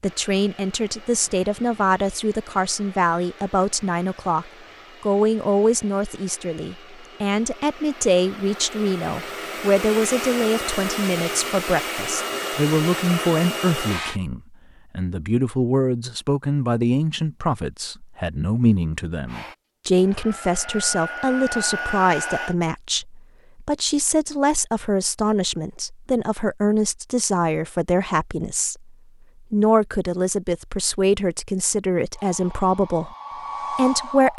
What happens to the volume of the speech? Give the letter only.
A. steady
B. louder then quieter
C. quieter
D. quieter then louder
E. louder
A.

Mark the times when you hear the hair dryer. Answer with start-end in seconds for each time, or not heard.
0.0-14.2, 19.2-22.6, 32.1-34.3.